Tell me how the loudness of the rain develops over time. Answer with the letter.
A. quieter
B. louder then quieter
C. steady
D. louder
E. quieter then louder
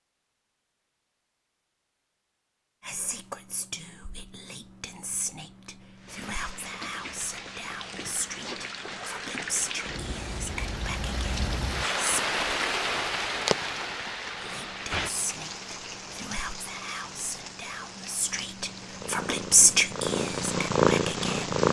B.